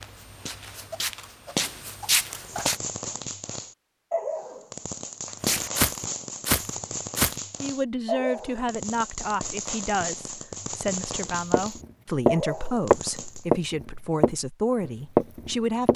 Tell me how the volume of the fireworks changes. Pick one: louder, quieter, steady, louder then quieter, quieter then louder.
steady.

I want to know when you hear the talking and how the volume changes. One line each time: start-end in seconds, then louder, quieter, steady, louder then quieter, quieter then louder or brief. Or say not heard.
7.6-15.9 steady.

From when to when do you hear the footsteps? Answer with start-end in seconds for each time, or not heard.
0.0-2.8, 5.5-7.3, 11.5-15.9.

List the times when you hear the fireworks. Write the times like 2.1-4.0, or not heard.
2.4-13.4.